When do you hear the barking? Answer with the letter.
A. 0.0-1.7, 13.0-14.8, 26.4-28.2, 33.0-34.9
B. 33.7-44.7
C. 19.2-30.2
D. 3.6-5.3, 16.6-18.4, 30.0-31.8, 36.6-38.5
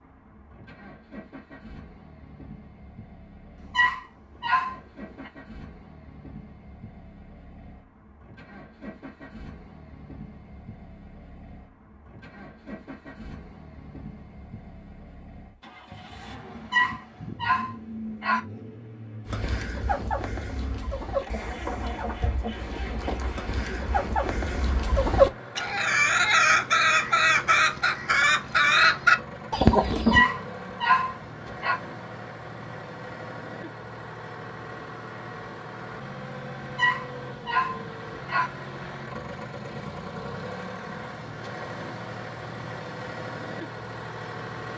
D.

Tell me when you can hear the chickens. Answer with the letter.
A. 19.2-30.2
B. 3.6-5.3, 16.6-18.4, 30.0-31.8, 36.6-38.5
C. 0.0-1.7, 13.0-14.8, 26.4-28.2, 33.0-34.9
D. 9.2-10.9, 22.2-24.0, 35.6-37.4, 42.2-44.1
A.